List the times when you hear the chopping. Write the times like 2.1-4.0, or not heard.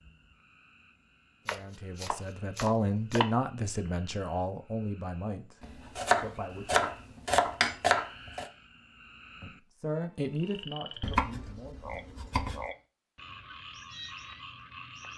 1.4-3.2, 5.6-8.4, 11.0-12.7.